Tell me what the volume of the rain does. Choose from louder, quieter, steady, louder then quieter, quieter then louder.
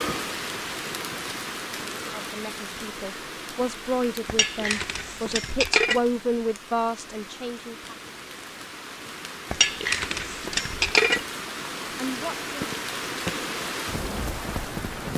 quieter then louder.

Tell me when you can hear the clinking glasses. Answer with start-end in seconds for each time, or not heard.
4.2-6.0, 9.5-11.2.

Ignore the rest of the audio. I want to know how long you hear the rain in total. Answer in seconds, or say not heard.
15 s.